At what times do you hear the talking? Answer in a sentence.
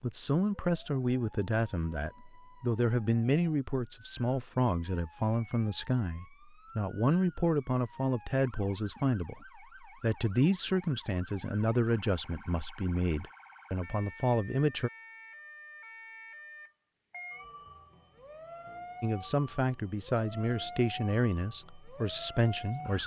The talking can be heard from 0.0 to 14.9 s and from 19.0 to 23.0 s.